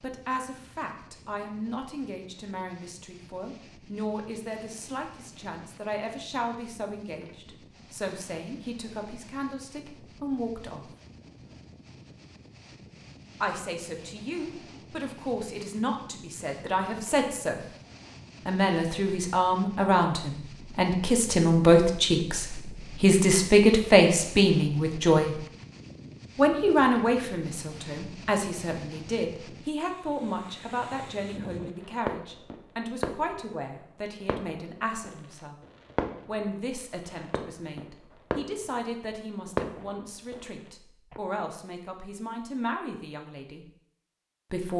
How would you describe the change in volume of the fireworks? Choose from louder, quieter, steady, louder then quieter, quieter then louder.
quieter then louder.